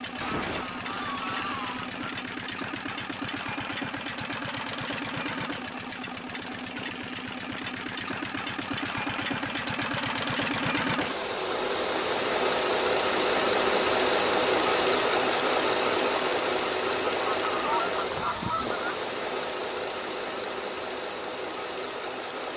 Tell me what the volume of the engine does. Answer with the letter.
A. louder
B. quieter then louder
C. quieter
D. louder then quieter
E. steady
D.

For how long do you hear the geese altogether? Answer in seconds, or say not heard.
4 s.